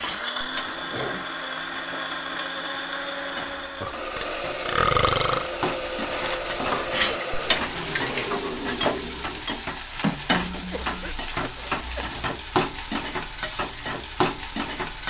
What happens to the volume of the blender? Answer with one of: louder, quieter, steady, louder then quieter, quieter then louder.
steady.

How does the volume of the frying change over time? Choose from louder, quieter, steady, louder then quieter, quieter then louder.
louder.